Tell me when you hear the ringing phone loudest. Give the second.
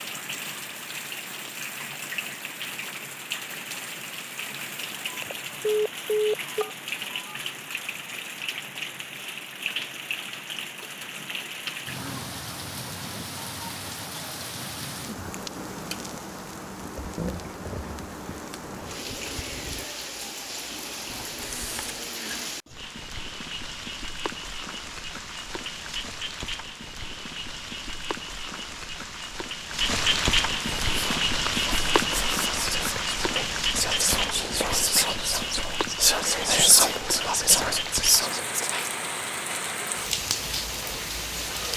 6 s.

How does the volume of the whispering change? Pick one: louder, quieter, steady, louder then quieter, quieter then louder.
louder.